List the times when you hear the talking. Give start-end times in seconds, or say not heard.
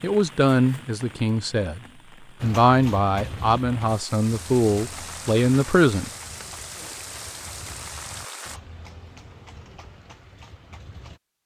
0.0-1.8, 2.4-6.1.